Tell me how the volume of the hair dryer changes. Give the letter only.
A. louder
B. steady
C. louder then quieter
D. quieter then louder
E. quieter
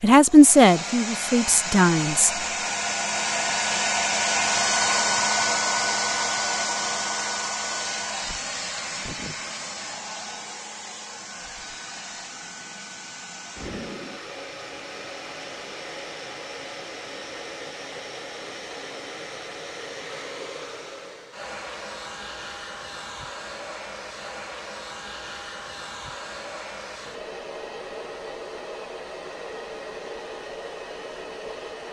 E.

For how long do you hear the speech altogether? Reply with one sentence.
You can hear the speech for 2 seconds altogether.